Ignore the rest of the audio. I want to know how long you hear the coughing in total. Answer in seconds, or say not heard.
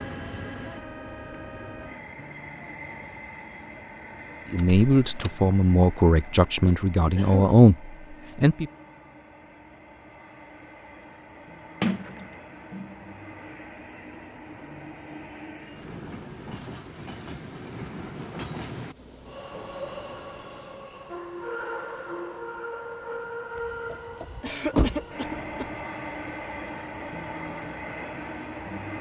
2 s.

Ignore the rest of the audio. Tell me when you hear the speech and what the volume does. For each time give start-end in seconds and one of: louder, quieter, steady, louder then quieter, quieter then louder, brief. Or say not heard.
4.5-8.7 louder.